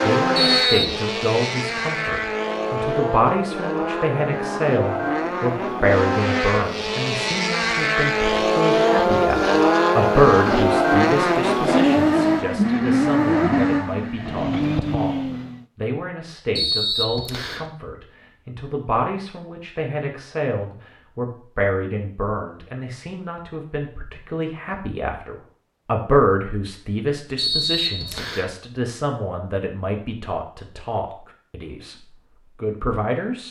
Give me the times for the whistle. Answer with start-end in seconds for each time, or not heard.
0.3-0.9, 16.6-17.6, 27.4-28.5.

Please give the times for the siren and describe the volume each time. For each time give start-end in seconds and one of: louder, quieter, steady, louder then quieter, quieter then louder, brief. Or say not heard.
not heard.